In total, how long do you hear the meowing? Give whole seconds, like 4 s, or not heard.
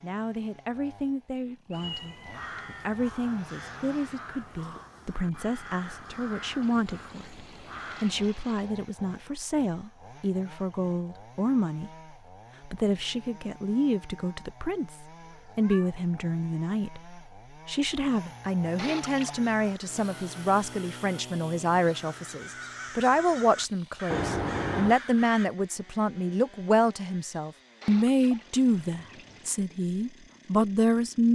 3 s.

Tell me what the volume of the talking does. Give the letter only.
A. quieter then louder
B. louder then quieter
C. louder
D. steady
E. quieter
C.